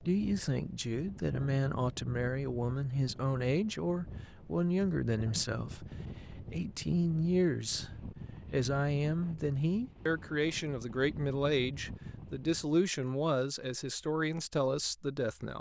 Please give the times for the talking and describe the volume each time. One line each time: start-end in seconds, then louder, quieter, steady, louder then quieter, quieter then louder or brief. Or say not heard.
0.0-15.5 steady.